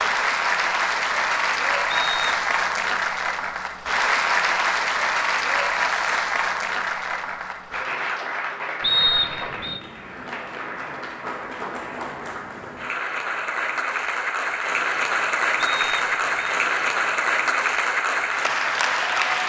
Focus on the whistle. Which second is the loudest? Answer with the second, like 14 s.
9 s.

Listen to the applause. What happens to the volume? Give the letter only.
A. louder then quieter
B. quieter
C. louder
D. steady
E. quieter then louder
E.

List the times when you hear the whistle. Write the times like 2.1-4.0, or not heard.
1.9-2.5, 8.8-9.8, 15.6-16.6.